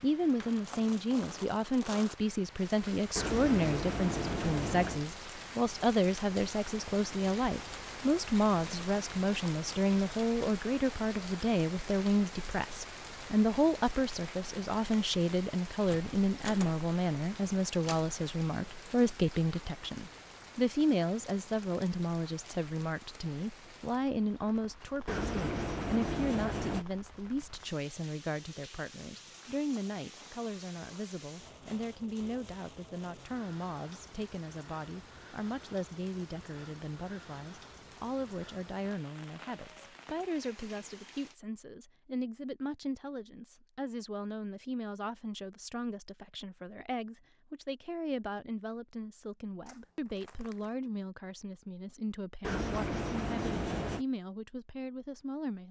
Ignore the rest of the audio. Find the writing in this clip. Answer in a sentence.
You can hear the writing from 3.1 to 5.0 s, from 25.1 to 26.9 s and from 52.4 to 54.0 s.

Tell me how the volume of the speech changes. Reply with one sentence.
The loudness of the speech goes down.